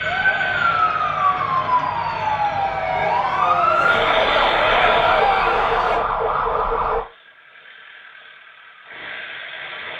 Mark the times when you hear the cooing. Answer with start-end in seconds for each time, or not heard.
not heard.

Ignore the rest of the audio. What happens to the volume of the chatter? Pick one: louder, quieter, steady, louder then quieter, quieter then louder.
louder.